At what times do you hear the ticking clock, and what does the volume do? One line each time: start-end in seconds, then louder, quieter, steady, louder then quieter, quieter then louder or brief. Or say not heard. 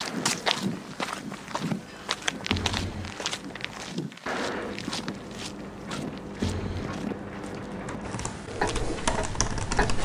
0.0-9.9 louder.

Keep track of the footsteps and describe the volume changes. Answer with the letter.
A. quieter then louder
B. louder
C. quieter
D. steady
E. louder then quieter
C.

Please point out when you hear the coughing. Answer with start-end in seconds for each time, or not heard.
2.5-3.1, 6.4-7.0.